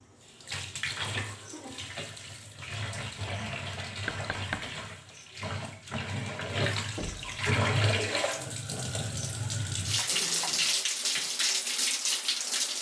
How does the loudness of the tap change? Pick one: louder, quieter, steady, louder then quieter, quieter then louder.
louder.